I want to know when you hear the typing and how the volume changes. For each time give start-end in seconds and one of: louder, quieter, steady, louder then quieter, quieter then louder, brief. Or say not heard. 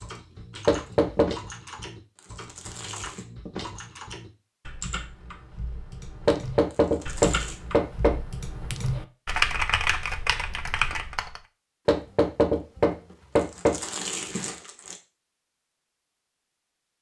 0.0-11.4 louder.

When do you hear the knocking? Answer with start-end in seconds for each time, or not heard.
0.7-1.4, 6.2-8.2, 11.8-13.8.